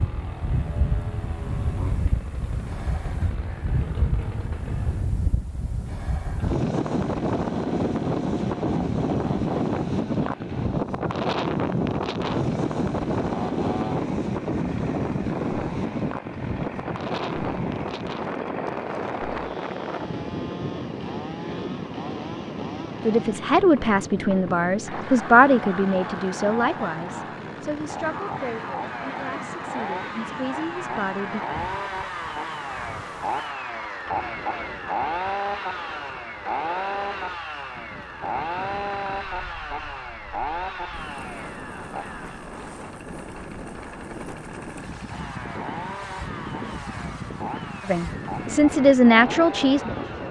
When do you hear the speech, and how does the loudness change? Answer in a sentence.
You can hear the speech from 23.1 to 31.4 s, getting quieter; and briefly from 47.9 to 50.2 s.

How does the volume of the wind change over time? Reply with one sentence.
The volume of the wind goes down, then up.